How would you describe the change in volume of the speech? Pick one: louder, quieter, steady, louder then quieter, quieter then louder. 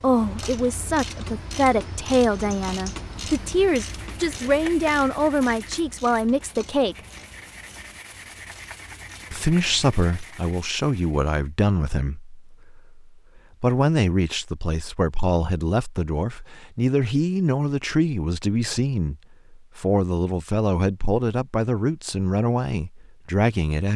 steady.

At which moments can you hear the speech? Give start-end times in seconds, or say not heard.
0.0-7.0, 9.3-23.9.